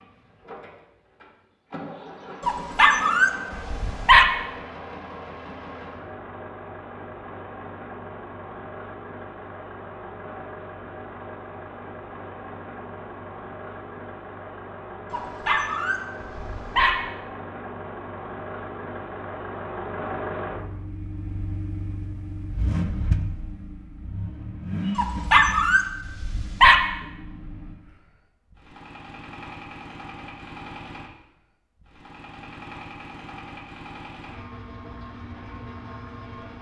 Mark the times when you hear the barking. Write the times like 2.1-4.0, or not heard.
2.5-4.2, 15.1-16.9, 24.9-26.8.